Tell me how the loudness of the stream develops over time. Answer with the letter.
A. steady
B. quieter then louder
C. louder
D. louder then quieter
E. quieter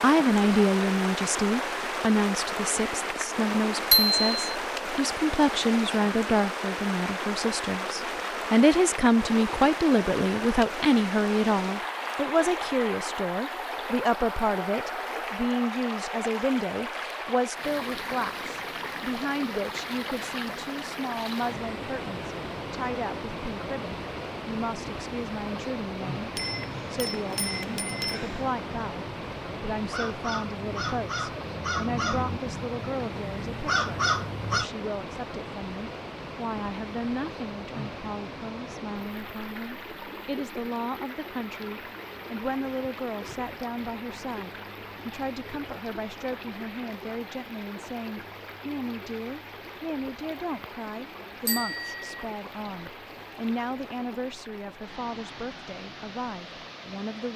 E.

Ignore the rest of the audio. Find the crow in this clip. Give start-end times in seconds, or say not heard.
26.7-34.6.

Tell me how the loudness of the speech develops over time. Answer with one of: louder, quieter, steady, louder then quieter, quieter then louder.
quieter.